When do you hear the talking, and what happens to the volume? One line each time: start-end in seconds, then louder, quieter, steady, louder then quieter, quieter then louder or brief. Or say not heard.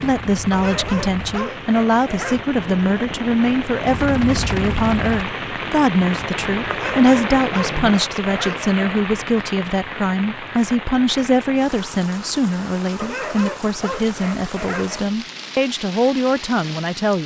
0.0-17.2 steady.